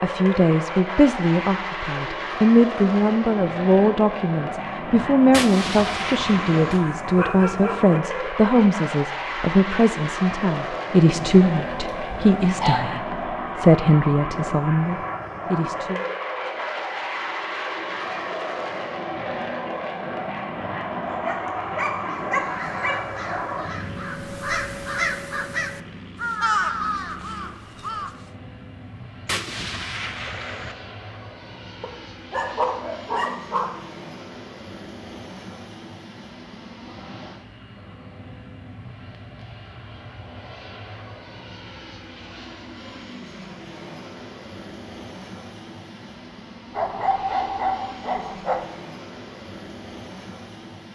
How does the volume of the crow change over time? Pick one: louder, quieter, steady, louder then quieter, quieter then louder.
louder then quieter.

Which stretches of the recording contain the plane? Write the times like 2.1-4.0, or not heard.
0.0-50.9.